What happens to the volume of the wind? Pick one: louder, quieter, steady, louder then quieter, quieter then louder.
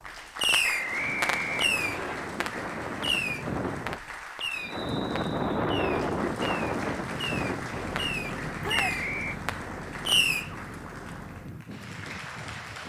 louder then quieter.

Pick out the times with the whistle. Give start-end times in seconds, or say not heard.
0.6-2.1, 4.5-5.8, 8.7-9.4.